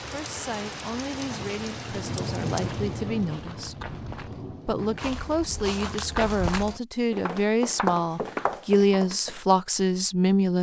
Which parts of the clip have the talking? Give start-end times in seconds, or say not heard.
0.0-4.0, 4.7-10.5.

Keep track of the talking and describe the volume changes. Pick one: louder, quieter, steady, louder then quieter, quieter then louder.
louder.